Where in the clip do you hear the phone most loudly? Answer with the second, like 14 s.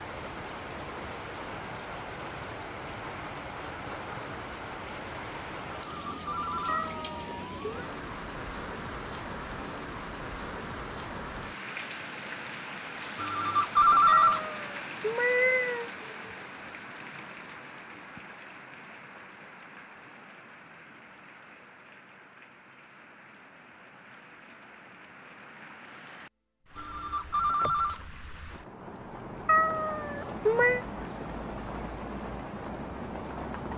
14 s.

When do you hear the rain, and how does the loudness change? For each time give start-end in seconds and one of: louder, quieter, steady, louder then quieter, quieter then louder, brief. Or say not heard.
0.0-33.7 quieter then louder.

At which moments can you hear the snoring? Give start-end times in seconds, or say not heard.
not heard.